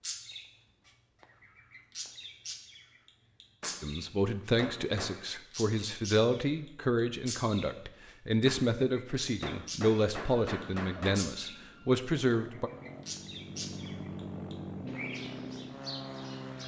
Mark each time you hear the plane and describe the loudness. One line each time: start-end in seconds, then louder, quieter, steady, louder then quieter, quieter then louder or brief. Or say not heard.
10.4-16.6 louder.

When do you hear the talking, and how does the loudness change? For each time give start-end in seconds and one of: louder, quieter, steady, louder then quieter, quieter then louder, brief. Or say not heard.
3.8-12.7 steady.